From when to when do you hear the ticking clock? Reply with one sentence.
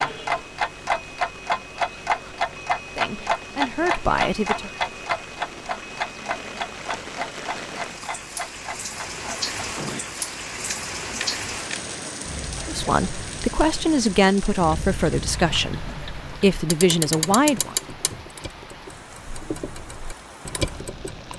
The ticking clock can be heard from 0.0 to 21.3 s.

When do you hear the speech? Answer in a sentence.
You can hear the speech from 3.0 to 4.7 s and from 12.7 to 17.8 s.